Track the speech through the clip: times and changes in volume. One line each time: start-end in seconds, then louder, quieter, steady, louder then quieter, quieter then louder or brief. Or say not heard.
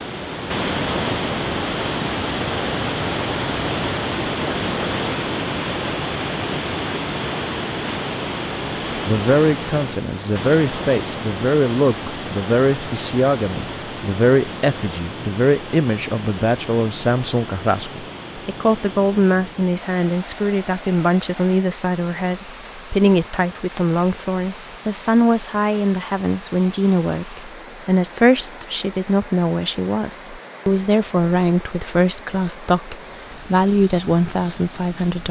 8.9-35.2 steady.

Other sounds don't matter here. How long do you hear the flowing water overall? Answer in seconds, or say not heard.
35 s.